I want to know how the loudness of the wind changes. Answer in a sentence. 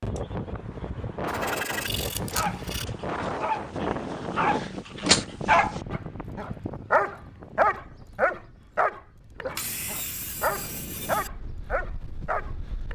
The volume of the wind goes down, then up.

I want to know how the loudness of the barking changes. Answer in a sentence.
The volume of the barking goes up, then down.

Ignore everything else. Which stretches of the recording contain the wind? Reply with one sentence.
The wind can be heard from 0.0 to 12.9 s.